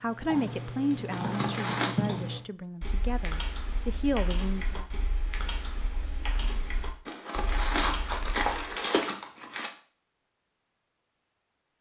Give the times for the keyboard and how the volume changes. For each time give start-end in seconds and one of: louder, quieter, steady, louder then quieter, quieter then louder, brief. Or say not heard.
0.0-8.5 quieter.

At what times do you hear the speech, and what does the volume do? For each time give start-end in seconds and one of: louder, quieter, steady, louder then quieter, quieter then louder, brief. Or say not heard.
0.0-4.8 quieter then louder.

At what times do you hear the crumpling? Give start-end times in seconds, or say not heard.
1.1-1.9, 7.0-9.7.